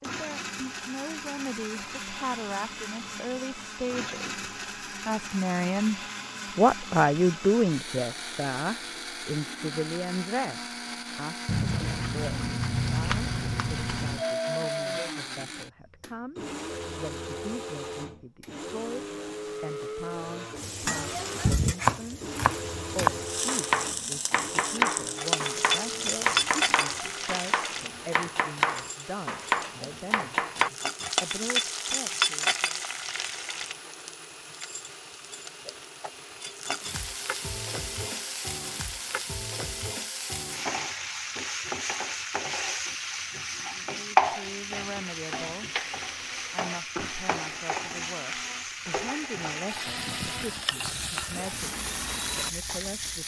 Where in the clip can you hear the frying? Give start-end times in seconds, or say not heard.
20.6-53.2.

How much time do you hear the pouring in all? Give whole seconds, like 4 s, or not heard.
3 s.